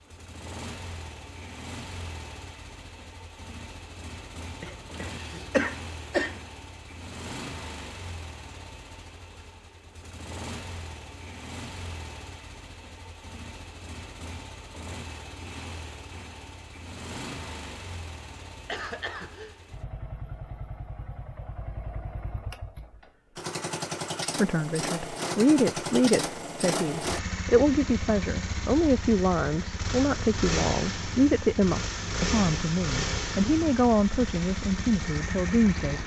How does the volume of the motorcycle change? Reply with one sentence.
The loudness of the motorcycle goes up.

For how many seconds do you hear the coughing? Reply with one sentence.
You can hear the coughing for 3 seconds altogether.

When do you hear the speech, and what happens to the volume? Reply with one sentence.
The speech can be heard from 24.4 to 36.0 s, at a steady volume.